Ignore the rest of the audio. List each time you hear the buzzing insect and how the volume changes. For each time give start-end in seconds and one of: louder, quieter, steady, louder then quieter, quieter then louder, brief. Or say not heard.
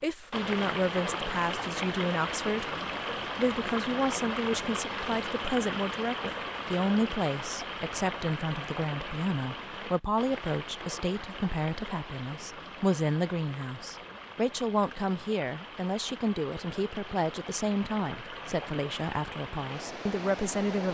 not heard.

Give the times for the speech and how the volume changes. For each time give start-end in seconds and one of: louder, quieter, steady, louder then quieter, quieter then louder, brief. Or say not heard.
0.0-2.8 brief
3.4-20.8 steady.